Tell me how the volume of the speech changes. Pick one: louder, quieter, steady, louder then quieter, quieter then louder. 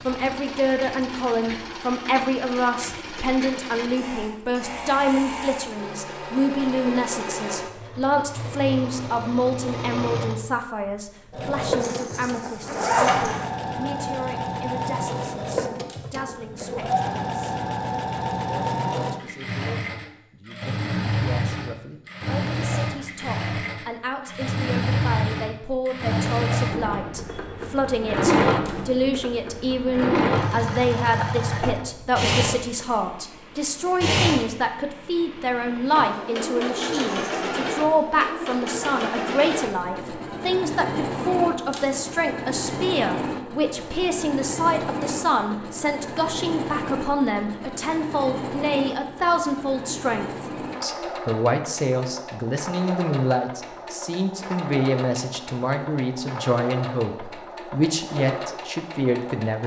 quieter then louder.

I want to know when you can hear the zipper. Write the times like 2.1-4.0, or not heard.
11.8-13.5, 36.9-37.5.